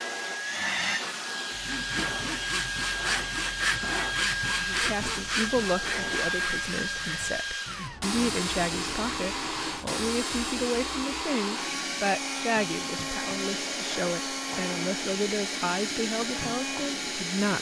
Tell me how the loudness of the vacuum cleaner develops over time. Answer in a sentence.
The volume of the vacuum cleaner stays about the same.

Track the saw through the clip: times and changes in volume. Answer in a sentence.
The saw can be heard from 1.5 to 9.9 s, getting quieter.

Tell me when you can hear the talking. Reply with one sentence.
You can hear the talking from 4.5 to 17.5 s.